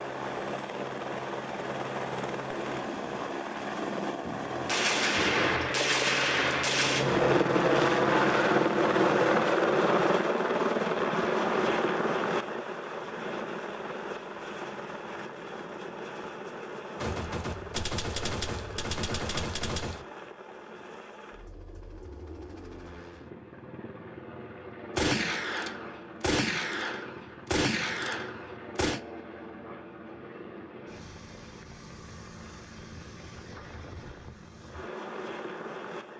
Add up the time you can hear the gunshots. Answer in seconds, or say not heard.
10 s.